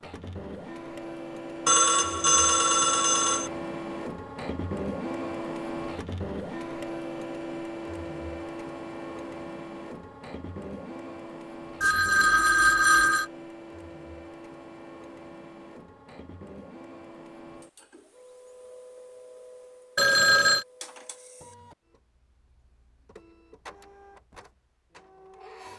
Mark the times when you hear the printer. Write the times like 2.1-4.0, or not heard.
0.0-25.7.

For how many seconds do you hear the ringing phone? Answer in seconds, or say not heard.
4 s.